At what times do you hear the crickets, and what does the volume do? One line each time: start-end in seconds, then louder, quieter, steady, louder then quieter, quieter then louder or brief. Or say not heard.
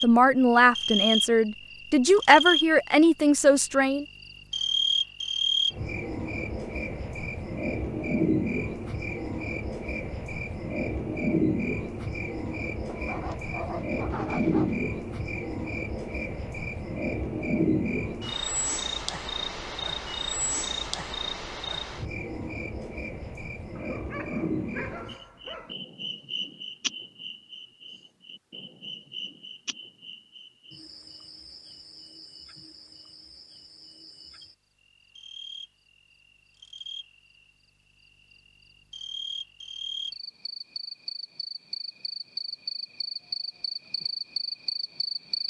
0.0-45.4 quieter then louder.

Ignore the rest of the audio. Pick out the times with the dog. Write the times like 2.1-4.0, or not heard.
12.8-14.8, 23.8-25.8.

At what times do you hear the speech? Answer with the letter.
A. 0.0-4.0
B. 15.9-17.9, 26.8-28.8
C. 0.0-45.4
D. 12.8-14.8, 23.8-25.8
A.